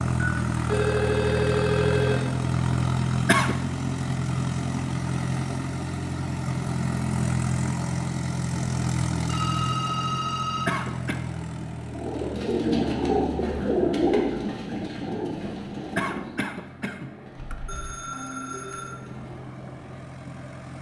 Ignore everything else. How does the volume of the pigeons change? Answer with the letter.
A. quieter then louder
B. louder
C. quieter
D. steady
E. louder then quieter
C.